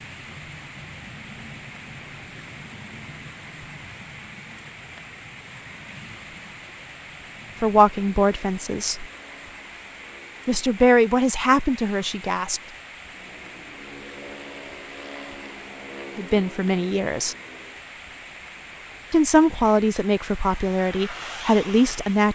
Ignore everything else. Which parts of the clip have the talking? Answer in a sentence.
The talking can be heard from 7.6 to 9.1 s, from 10.4 to 12.6 s, from 16.1 to 17.4 s and from 19.1 to 22.3 s.